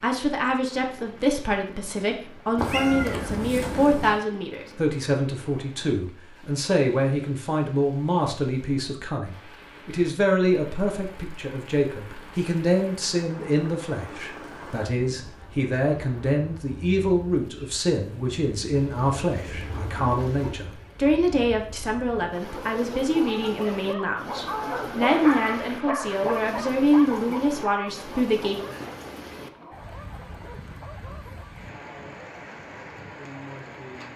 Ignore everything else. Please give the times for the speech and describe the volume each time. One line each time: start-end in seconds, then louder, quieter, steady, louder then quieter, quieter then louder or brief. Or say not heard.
0.0-28.6 steady.